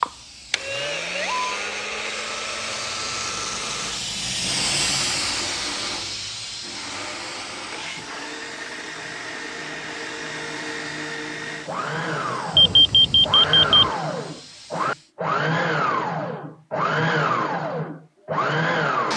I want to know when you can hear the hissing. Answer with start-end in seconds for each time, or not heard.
0.0-15.1.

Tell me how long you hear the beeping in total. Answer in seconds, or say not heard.
2 s.